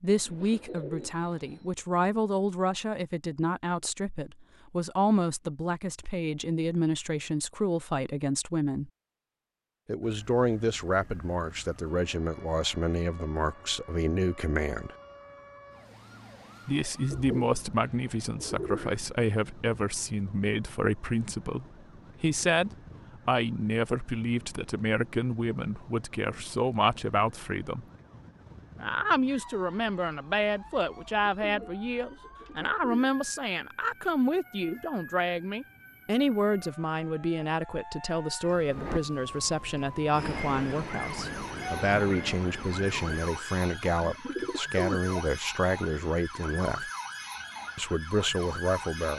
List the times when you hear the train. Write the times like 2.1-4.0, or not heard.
38.6-43.5.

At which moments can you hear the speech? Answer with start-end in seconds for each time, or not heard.
0.0-8.9, 9.8-14.9, 16.6-27.9, 28.8-46.9, 47.8-49.1.